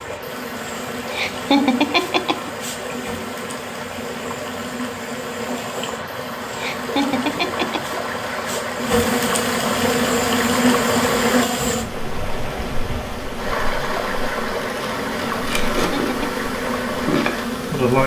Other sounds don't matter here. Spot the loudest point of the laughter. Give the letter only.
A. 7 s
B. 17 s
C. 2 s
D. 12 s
C.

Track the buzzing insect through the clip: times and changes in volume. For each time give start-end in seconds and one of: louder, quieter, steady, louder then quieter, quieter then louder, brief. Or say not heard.
0.0-18.0 louder.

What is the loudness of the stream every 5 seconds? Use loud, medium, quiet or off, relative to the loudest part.
medium, loud, loud, loud.